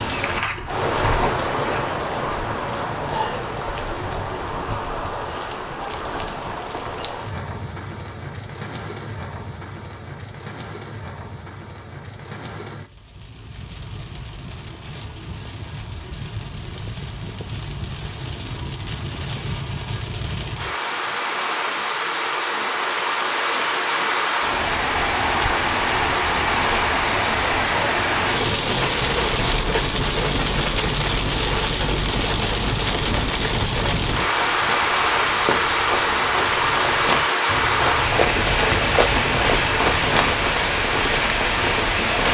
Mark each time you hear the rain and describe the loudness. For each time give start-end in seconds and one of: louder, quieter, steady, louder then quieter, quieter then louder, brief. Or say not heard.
0.0-42.2 quieter then louder.